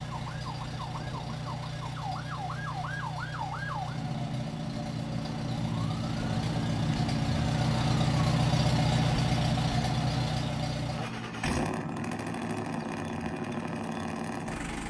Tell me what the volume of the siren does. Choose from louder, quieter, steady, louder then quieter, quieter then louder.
louder then quieter.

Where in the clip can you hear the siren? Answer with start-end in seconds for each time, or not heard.
0.0-14.8.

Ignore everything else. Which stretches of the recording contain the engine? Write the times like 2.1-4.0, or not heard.
0.0-14.8.